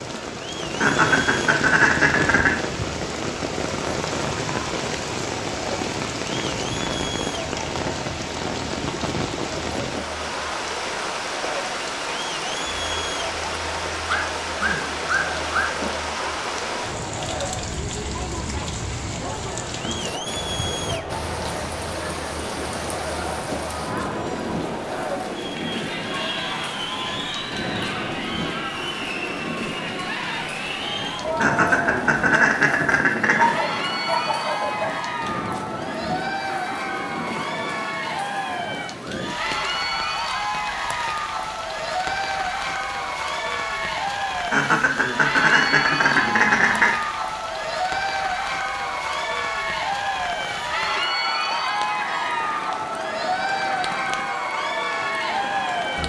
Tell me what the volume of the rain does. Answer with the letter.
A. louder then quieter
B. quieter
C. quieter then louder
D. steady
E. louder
B.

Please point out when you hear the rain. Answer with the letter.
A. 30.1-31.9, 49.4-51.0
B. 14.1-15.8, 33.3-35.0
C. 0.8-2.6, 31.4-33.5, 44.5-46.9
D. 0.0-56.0
D.